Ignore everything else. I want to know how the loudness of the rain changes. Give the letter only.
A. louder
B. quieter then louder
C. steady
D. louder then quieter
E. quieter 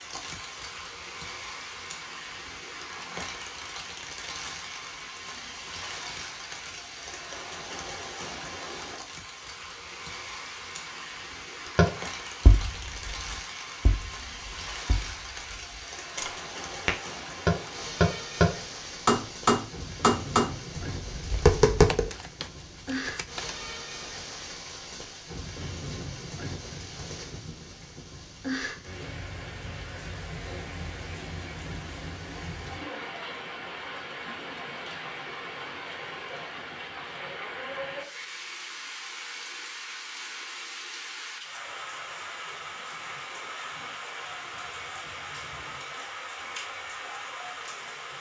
C.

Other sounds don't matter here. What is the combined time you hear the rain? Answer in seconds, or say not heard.
48 s.